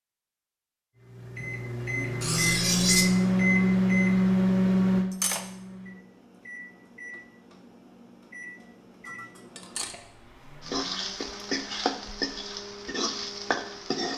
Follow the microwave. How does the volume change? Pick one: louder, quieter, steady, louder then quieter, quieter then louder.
quieter.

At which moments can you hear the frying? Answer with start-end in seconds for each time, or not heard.
10.6-14.1.